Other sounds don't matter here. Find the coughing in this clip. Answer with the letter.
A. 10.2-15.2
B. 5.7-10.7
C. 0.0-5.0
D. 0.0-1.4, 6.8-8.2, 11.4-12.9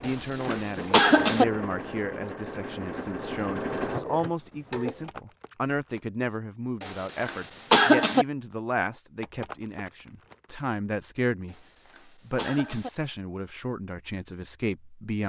D.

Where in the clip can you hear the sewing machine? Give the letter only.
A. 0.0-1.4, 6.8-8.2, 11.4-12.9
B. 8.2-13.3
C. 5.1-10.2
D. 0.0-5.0
D.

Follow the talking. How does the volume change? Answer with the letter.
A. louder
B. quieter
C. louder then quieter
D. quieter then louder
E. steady
E.